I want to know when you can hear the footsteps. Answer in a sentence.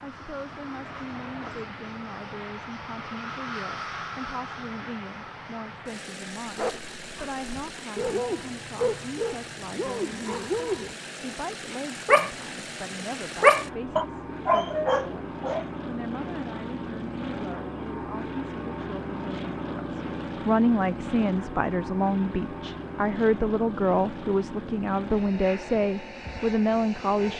You can't hear the footsteps here.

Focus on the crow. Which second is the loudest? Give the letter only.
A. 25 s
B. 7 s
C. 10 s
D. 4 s
D.